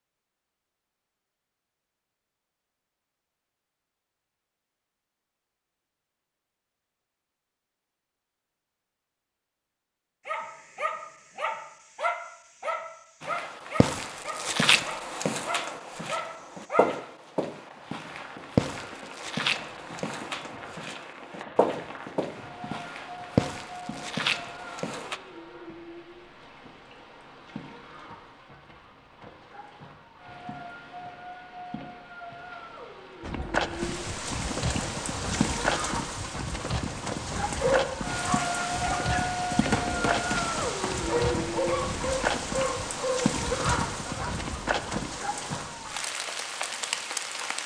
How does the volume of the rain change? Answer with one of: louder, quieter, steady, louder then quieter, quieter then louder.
louder.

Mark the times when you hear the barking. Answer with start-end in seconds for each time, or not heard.
10.2-17.0, 37.4-44.4.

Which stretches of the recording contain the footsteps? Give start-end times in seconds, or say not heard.
13.2-25.2, 33.2-45.2.